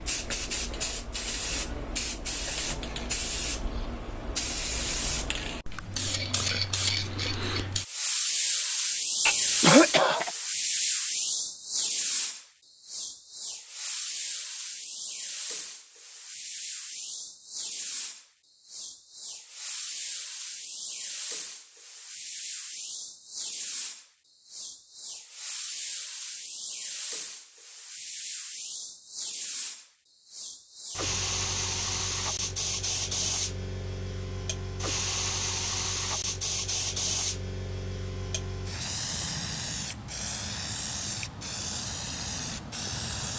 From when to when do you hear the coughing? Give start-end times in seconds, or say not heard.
9.2-10.3.